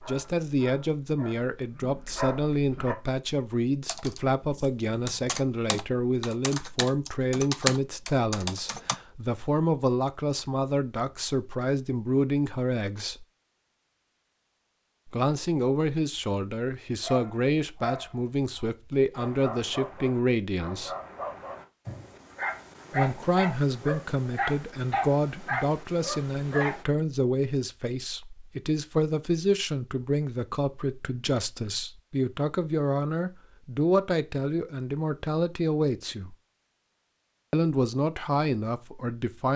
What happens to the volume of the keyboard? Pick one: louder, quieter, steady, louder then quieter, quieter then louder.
louder then quieter.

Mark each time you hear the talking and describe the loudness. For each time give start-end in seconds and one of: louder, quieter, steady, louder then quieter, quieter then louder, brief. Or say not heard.
0.0-13.2 steady
15.1-20.9 steady
22.9-36.4 steady
37.5-39.5 brief.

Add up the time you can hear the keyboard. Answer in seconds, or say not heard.
5 s.